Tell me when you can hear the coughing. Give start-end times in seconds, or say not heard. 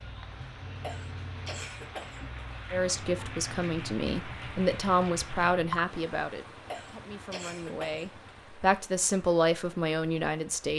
0.8-2.2, 6.7-8.1.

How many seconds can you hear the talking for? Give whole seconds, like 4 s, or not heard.
8 s.